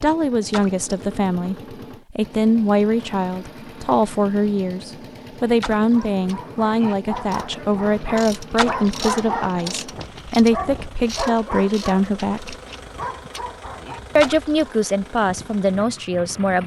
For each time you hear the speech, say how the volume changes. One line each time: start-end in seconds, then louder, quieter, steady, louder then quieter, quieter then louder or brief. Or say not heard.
0.0-12.6 steady
14.2-16.6 brief.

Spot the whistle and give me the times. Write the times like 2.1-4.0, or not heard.
not heard.